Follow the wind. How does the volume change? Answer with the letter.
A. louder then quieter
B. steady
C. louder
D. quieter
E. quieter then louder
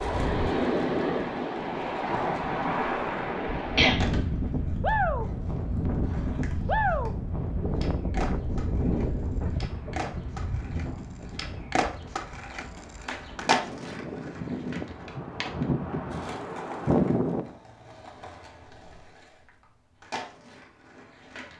E.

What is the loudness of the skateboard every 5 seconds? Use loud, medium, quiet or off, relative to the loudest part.
medium, medium, loud, medium, medium.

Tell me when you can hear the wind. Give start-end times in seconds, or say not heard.
0.0-17.6.